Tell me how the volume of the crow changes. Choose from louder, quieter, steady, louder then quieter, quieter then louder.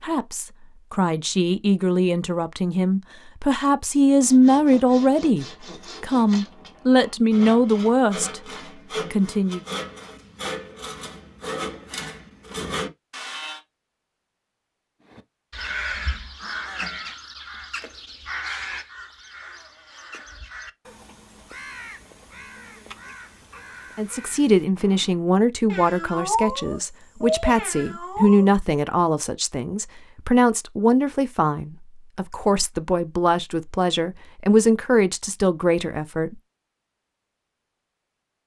quieter.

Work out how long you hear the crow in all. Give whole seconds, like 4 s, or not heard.
10 s.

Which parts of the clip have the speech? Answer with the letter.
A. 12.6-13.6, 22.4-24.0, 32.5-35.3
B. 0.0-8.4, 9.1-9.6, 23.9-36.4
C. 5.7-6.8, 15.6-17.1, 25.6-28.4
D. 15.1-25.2
B.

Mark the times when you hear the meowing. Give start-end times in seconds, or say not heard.
5.7-6.8, 15.6-17.1, 25.6-28.4.